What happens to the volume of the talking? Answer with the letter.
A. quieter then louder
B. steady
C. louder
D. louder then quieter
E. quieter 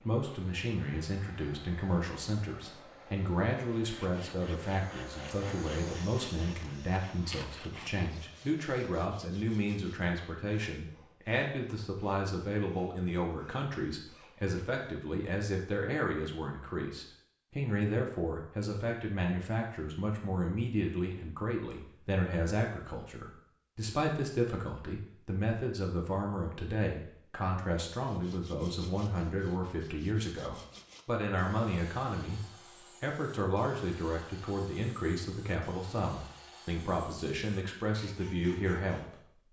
B.